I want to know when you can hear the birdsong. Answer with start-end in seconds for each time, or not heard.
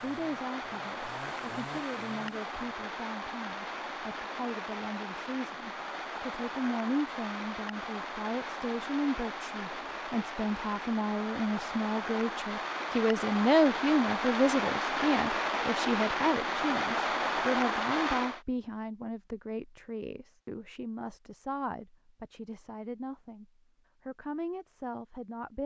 not heard.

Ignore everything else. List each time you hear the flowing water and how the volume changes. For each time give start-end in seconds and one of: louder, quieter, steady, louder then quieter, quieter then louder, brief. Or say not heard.
0.0-18.4 louder.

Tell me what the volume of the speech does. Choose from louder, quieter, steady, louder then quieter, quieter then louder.
louder then quieter.